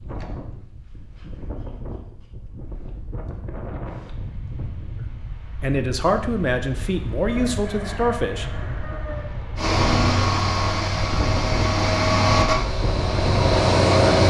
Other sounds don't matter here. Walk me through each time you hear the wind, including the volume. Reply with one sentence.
The wind can be heard from 0.0 to 14.2 s, getting louder.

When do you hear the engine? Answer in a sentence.
The engine can be heard from 9.6 to 14.2 s.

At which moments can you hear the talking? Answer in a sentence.
You can hear the talking from 5.0 to 8.4 s.